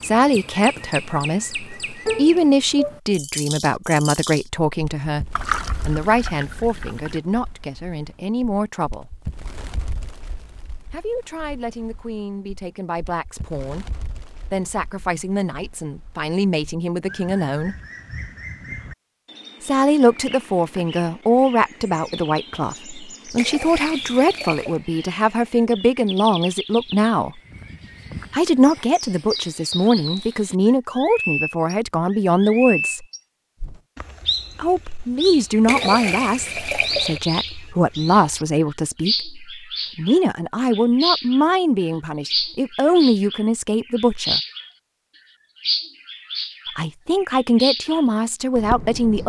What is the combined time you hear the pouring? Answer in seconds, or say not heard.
5 s.